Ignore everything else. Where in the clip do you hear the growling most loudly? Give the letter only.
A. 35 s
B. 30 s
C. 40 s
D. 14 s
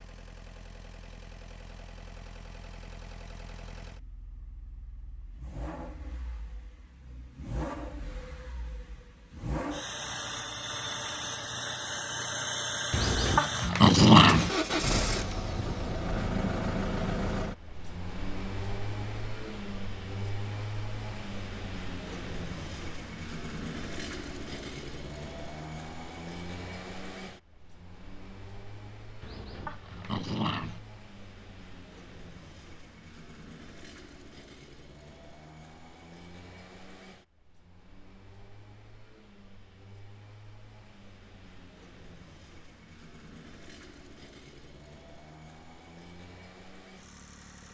D.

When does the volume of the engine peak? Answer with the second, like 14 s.
15 s.